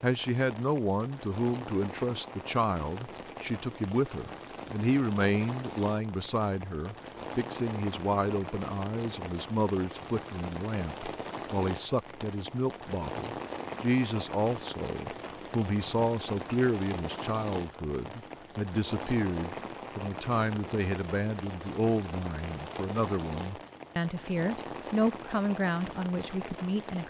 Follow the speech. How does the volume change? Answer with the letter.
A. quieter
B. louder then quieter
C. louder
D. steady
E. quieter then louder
D.